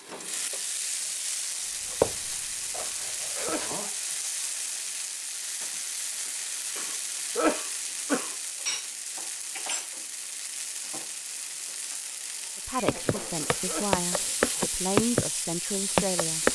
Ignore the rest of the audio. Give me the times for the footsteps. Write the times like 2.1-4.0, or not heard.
2.0-3.8, 12.8-15.2, 15.9-16.5.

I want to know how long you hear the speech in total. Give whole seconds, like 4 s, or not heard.
4 s.